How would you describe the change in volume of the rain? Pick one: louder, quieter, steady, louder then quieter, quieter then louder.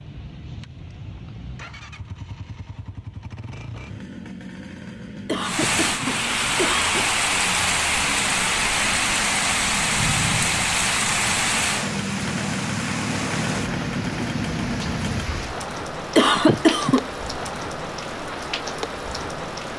quieter.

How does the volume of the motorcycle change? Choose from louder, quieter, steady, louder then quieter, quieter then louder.
louder.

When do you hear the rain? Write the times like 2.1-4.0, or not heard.
5.4-19.7.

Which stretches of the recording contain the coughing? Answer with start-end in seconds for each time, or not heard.
5.2-7.0, 16.1-17.1.